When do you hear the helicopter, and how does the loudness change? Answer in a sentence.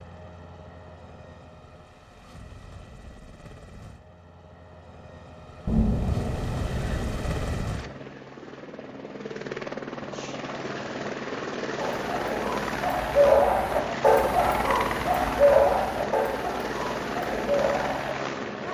You can hear the helicopter from 0.0 to 18.7 s, getting louder.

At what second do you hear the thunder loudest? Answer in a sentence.
The volume of the thunder peaks at 6 seconds.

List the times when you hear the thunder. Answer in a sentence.
The thunder can be heard from 5.7 to 7.7 s.